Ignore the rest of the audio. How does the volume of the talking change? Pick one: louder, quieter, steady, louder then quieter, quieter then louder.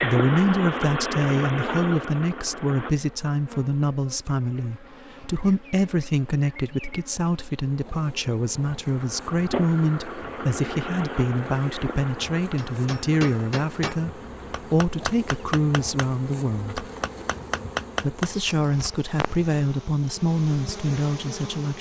steady.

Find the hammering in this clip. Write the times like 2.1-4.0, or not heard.
12.6-18.3.